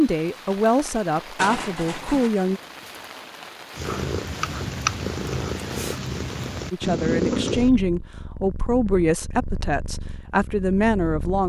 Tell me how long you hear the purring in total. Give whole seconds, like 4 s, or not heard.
8 s.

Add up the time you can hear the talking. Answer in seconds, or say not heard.
7 s.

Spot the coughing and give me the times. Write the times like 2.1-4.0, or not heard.
1.4-2.3.